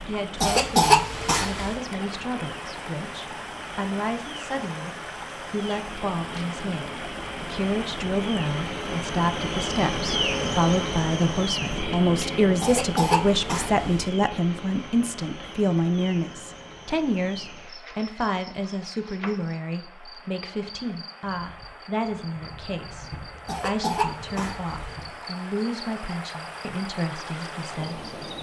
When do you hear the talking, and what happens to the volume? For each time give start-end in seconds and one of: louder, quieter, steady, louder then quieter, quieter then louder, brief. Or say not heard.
0.1-28.1 louder then quieter.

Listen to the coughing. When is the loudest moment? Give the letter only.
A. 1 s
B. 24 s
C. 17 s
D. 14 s
A.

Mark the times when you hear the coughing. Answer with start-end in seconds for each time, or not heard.
0.4-1.8, 12.6-14.1, 23.4-24.9.